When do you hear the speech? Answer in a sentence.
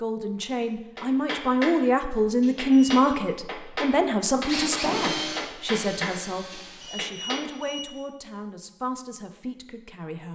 The speech can be heard from 0.0 to 10.3 s.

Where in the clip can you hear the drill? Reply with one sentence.
The drill can be heard from 4.5 to 7.0 s.